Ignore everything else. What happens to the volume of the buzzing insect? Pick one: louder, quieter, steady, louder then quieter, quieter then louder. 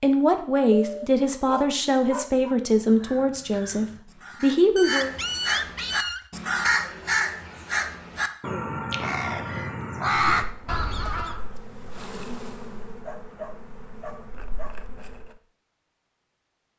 louder then quieter.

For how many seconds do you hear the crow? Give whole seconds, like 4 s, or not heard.
9 s.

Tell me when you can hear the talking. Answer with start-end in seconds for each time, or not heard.
0.0-5.2.